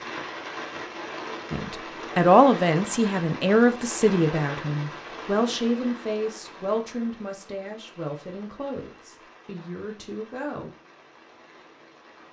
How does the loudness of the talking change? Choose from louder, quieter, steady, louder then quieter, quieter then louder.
quieter.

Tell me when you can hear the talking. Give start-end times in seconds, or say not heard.
1.5-10.7.